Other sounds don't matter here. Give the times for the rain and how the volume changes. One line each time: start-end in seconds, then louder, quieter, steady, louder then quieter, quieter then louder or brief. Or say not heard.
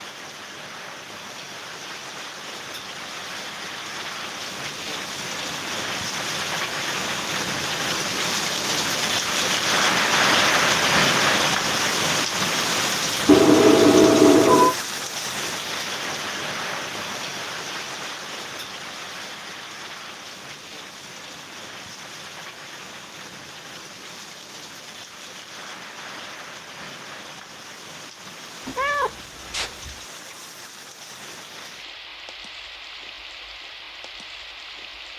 0.0-35.1 louder then quieter.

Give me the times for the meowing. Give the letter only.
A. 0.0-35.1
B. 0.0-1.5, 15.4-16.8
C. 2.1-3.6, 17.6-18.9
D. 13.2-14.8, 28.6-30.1
D.